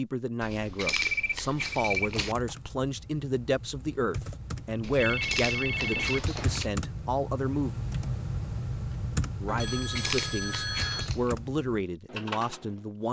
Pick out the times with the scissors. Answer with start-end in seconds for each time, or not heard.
0.4-2.4, 4.8-6.7, 9.6-11.3.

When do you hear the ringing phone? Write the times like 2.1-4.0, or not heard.
0.9-2.5, 5.0-6.6, 9.4-11.1.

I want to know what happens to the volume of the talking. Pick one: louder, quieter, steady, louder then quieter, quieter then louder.
steady.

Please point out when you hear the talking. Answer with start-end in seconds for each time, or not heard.
0.0-7.7, 9.4-13.0.